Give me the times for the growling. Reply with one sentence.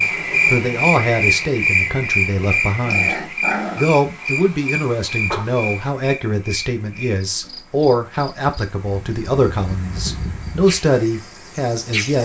You can hear the growling from 2.4 to 3.9 s.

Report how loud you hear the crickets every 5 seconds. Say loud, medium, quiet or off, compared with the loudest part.
loud, medium, medium.